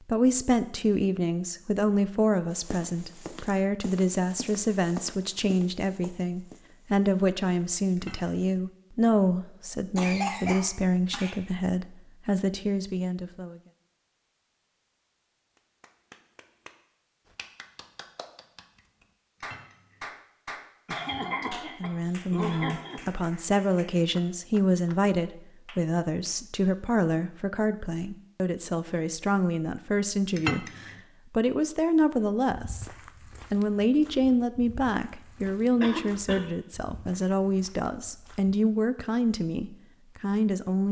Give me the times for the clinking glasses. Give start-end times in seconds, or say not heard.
8.0-8.4, 19.4-20.1, 30.4-31.0.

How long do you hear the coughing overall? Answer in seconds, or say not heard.
4 s.